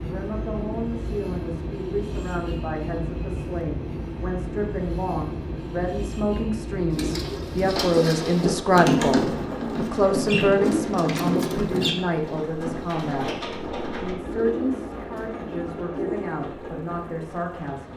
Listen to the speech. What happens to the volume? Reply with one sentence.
The loudness of the speech goes up, then down.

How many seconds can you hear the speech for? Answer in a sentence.
You can hear the speech for 18 seconds altogether.